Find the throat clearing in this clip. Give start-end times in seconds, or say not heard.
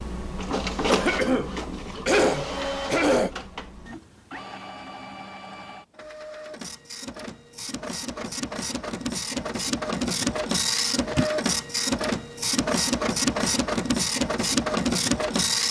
0.8-3.3.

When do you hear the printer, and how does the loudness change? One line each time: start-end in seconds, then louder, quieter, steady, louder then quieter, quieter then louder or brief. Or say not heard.
0.0-15.6 quieter then louder.